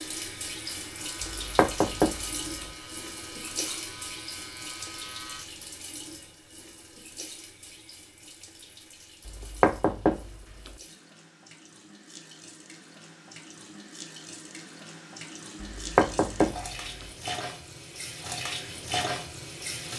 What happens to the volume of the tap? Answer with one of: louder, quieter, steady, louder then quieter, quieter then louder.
quieter then louder.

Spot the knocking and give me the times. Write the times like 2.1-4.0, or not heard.
1.4-2.7, 9.2-10.8, 15.6-17.1.